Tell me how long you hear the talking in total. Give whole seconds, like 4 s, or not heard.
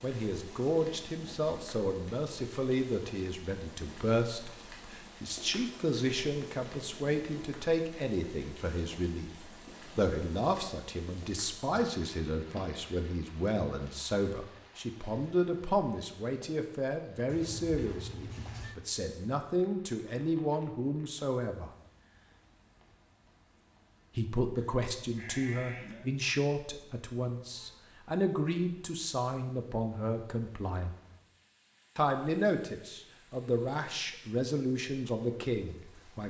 33 s.